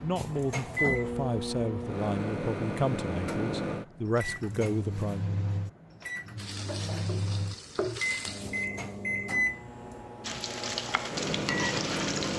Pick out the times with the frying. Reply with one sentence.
The frying can be heard from 6.3 to 8.7 s and from 10.2 to 12.3 s.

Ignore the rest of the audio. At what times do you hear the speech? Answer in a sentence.
The speech can be heard from 0.0 to 5.2 s.